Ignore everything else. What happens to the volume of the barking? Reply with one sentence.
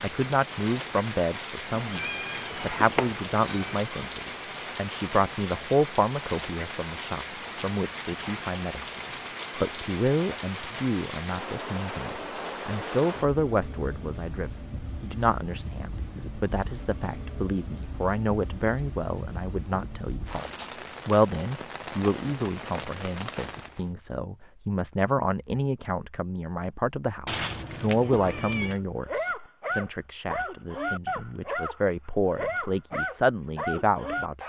The volume of the barking stays about the same.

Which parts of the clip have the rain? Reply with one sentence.
The rain can be heard from 0.0 to 23.9 s.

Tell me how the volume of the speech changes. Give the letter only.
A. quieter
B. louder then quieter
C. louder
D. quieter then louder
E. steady
E.